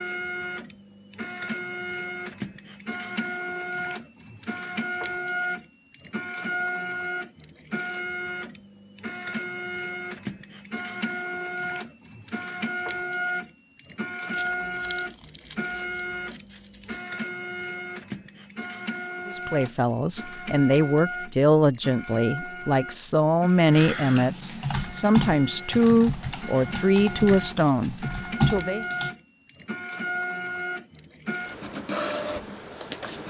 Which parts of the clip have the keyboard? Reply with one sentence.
The keyboard can be heard from 23.7 to 29.1 s.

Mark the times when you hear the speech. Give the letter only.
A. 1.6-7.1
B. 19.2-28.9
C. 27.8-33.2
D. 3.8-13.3
B.